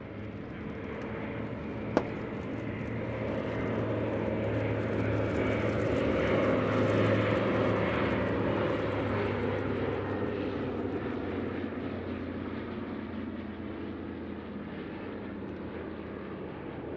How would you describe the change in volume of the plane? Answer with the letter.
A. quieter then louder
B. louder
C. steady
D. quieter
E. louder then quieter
E.